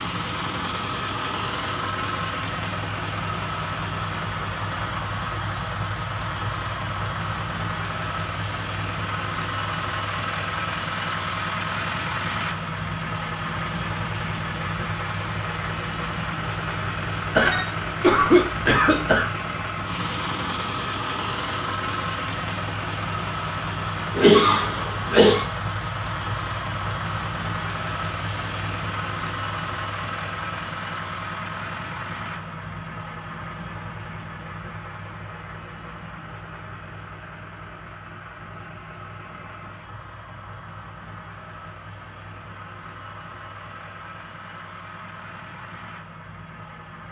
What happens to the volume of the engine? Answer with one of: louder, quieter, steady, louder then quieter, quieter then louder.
quieter.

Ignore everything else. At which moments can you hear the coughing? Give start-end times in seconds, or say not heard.
17.3-19.3, 24.1-25.4.